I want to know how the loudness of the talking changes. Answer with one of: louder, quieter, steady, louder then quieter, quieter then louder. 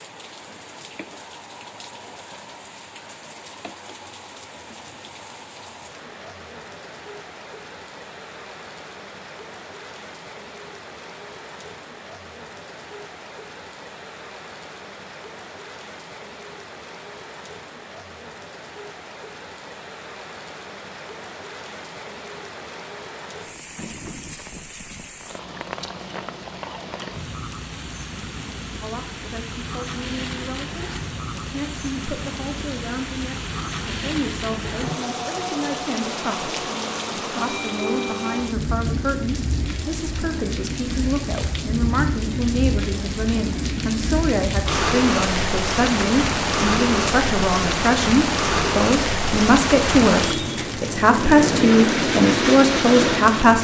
louder.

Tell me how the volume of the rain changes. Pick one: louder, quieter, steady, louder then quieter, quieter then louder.
louder.